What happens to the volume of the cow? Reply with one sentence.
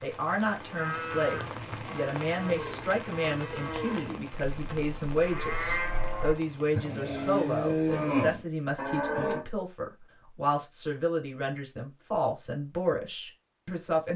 The volume of the cow goes up.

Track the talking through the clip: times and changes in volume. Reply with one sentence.
You can hear the talking from 0.0 to 14.1 s, at a steady volume.